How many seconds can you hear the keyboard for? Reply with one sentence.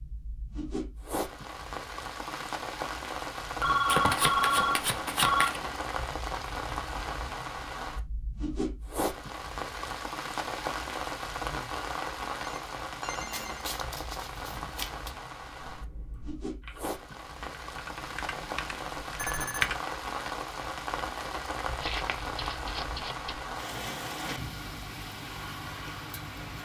The keyboard can be heard for 4 seconds in total.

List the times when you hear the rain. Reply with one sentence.
You can hear the rain from 0.0 to 26.6 s.